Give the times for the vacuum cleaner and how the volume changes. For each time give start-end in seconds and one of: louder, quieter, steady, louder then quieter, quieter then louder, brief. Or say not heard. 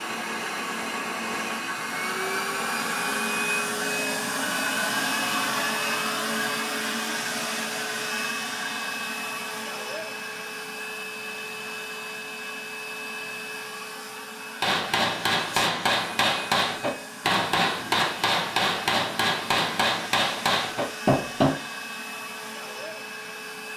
0.0-23.7 quieter.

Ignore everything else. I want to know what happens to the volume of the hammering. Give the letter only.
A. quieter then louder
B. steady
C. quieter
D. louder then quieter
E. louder
B.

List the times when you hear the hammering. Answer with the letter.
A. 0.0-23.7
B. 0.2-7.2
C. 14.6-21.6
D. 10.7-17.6
C.